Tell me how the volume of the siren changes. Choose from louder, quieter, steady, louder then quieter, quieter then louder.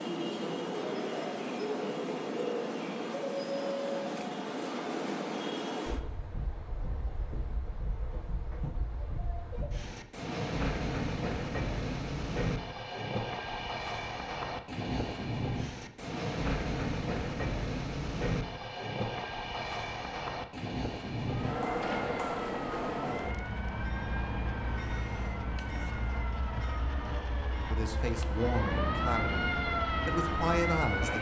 louder.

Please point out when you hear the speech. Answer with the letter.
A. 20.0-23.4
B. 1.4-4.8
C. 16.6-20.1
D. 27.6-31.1
D.